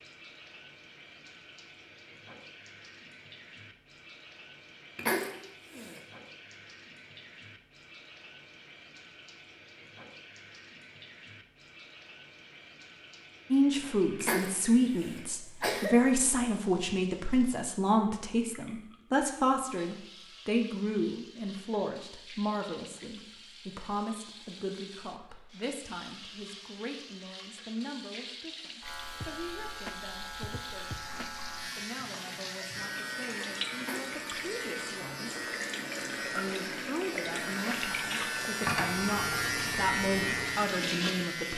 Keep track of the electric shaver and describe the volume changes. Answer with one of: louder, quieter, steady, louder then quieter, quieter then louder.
louder.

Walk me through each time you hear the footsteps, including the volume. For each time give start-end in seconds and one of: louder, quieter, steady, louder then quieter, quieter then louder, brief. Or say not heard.
not heard.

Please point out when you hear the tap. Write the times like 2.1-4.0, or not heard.
0.0-41.5.